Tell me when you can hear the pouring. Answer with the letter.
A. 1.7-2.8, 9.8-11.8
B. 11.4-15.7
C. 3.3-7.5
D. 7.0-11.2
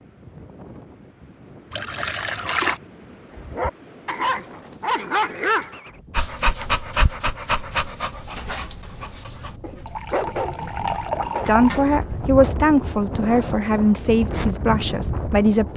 A.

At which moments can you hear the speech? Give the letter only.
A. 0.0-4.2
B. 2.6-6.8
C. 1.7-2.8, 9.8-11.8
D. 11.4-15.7
D.